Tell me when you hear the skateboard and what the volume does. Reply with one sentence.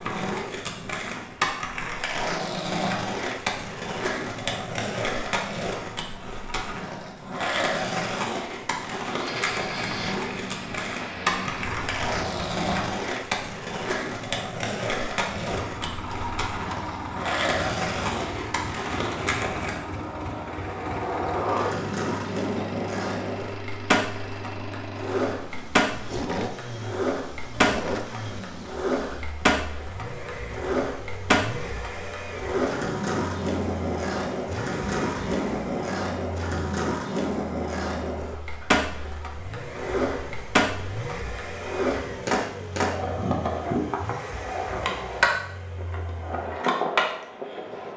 The skateboard can be heard from 0.0 to 47.9 s, at a steady volume.